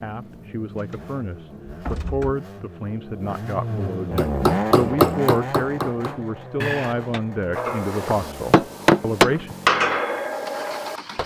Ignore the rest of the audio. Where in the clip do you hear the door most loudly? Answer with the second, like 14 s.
7 s.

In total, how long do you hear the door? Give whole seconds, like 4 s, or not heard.
2 s.